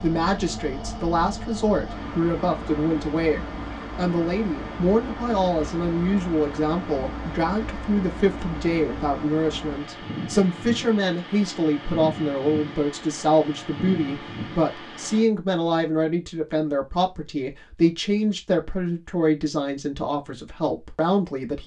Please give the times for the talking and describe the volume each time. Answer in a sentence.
The talking can be heard from 0.0 to 21.6 s, at a steady volume.